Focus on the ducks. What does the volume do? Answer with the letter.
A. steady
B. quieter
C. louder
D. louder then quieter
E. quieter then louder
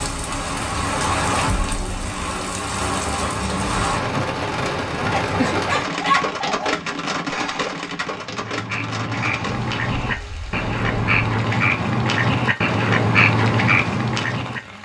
C.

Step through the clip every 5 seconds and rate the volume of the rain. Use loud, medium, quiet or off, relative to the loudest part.
loud, loud, quiet.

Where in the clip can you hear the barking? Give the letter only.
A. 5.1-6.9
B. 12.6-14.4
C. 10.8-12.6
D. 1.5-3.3
A.